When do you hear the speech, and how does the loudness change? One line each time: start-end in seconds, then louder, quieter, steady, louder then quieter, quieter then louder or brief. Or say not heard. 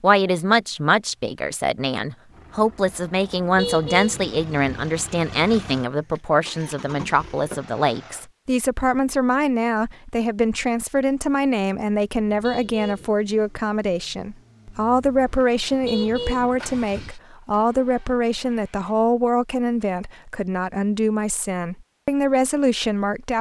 0.0-23.3 steady.